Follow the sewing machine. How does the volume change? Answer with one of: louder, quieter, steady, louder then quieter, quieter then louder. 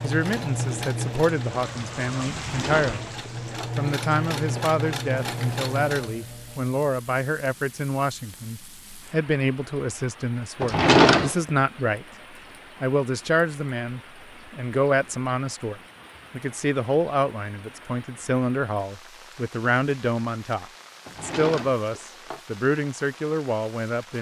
quieter then louder.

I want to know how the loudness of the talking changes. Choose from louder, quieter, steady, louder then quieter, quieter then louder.
steady.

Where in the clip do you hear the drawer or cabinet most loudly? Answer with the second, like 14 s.
11 s.